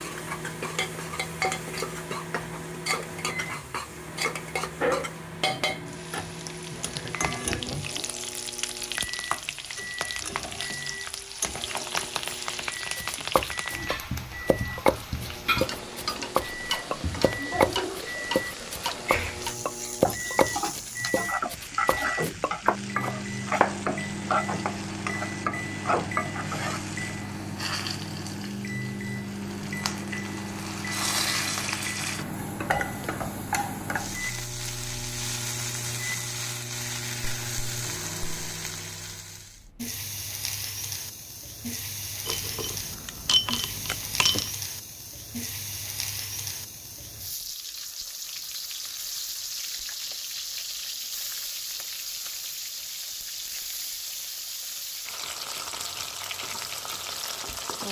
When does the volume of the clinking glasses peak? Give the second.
43 s.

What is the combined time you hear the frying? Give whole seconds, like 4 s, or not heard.
58 s.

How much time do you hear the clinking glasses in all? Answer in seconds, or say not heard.
2 s.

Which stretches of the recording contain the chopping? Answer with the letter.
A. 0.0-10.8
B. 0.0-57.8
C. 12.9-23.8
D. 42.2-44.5
C.